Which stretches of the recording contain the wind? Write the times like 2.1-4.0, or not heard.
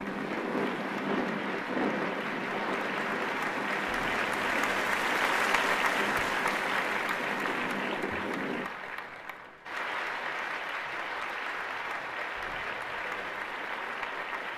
0.0-8.7.